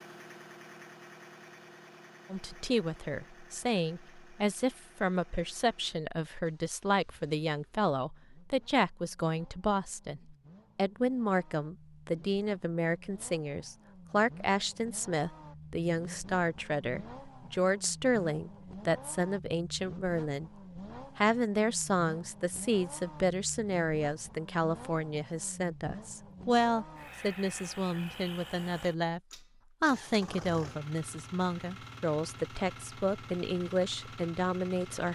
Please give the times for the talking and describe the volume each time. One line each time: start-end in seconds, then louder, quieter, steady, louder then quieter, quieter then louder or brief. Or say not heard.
2.3-20.5 steady
21.1-35.1 steady.